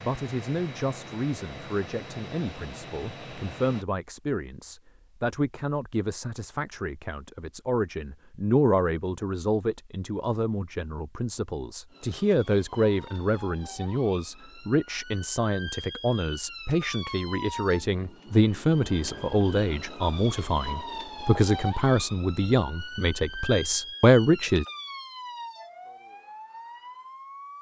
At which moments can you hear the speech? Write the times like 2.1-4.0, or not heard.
0.0-24.6.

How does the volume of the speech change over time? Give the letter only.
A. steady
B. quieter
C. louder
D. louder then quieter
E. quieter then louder
C.